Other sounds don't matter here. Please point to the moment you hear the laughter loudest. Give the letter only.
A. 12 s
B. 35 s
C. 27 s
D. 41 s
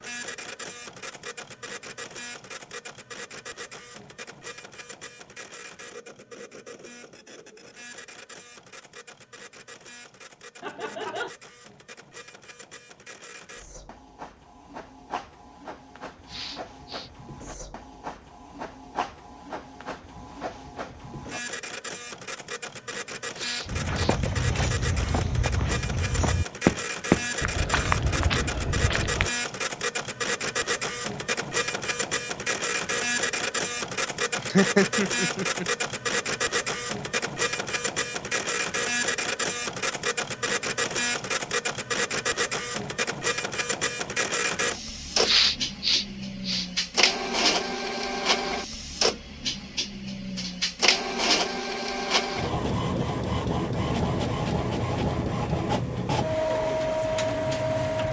B.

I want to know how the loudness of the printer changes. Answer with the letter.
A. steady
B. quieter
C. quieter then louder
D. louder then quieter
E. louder
E.